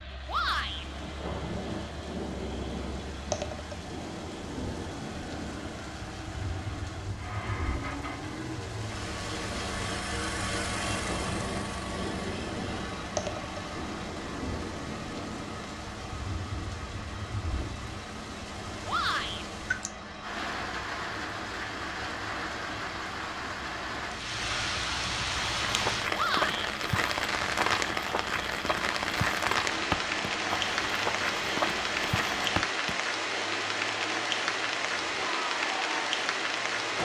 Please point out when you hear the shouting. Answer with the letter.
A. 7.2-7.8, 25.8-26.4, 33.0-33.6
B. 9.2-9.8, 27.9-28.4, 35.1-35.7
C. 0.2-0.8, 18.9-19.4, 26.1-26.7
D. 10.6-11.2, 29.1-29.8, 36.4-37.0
C.